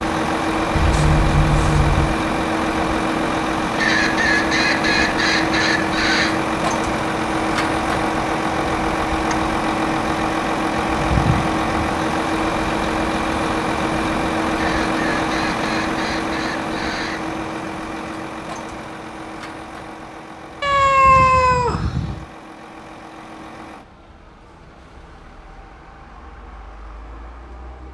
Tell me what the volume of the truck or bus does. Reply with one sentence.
The volume of the truck or bus goes down.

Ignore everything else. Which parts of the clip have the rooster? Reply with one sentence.
The rooster can be heard from 3.8 to 6.3 s and from 14.6 to 17.2 s.